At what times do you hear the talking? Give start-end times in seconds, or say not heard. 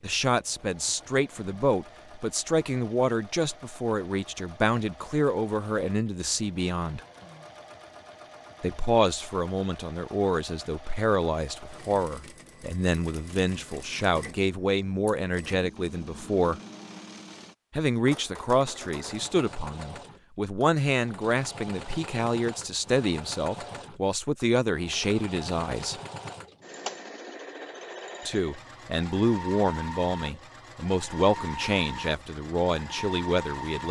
0.0-7.0, 8.6-16.6, 17.8-25.9, 28.2-33.8.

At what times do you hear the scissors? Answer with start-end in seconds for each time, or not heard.
not heard.